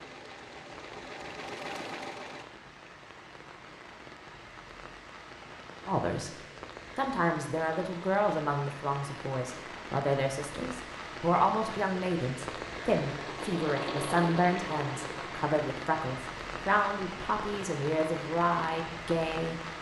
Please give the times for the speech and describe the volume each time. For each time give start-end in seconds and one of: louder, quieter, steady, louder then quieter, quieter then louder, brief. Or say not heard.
5.8-6.3 brief
7.0-19.6 steady.